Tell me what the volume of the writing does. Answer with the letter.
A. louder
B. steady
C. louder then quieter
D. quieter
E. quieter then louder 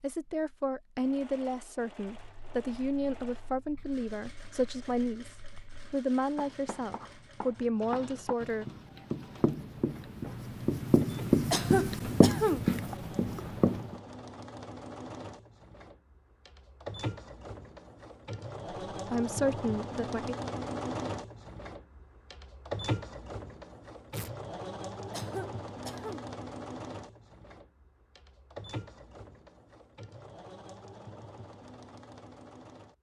A.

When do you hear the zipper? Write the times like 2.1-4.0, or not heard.
not heard.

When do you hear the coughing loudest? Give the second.
12 s.